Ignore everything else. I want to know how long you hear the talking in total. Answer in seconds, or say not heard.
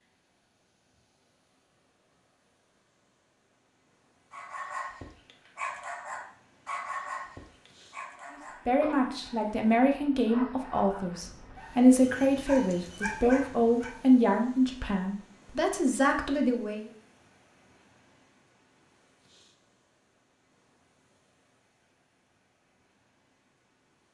8 s.